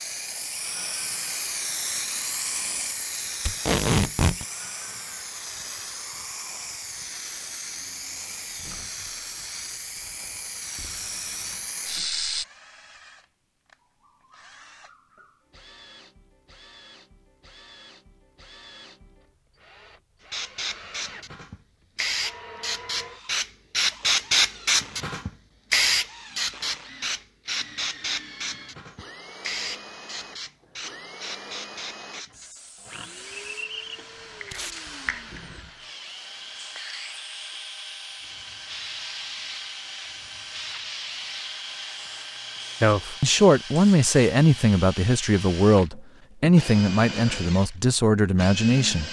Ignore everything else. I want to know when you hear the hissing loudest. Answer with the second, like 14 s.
24 s.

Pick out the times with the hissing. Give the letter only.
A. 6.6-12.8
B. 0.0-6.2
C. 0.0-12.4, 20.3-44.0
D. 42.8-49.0
C.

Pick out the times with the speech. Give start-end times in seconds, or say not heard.
42.8-49.0.